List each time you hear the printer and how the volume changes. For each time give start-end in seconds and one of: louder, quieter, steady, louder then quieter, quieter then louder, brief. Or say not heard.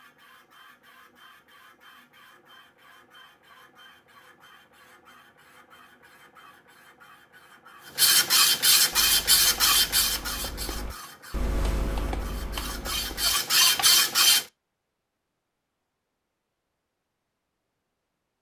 0.0-14.4 louder.